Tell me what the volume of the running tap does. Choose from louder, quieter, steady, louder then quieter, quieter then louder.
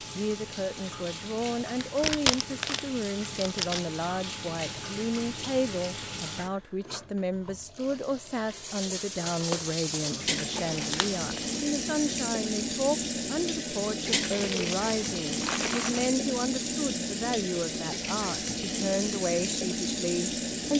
louder.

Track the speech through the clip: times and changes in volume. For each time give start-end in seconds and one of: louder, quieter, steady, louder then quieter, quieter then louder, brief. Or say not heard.
0.1-20.7 steady.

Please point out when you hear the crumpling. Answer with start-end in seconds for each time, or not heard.
1.8-3.9, 9.4-11.6, 14.3-16.1.